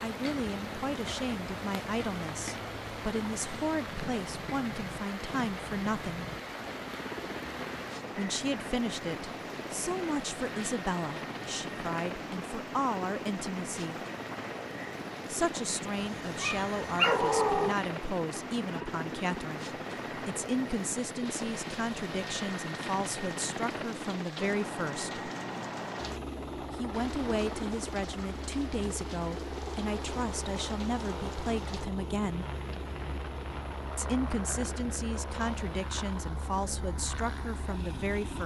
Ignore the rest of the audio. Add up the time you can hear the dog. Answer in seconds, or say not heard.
2 s.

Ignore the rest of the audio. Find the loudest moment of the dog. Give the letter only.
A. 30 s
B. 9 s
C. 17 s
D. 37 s
C.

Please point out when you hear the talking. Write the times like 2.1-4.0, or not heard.
0.0-6.3, 8.2-14.0, 15.2-25.3, 26.7-32.5, 34.0-38.4.